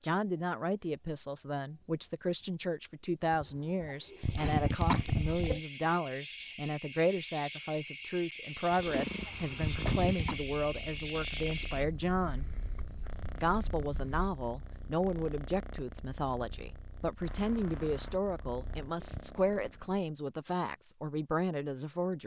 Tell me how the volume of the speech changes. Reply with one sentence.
The volume of the speech stays about the same.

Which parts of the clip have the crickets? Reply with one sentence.
You can hear the crickets from 0.0 to 14.3 s.